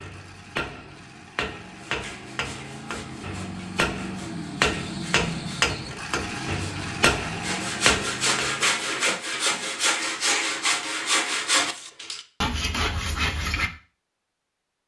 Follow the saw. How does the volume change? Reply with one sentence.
The loudness of the saw goes up.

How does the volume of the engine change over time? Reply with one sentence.
The loudness of the engine goes up.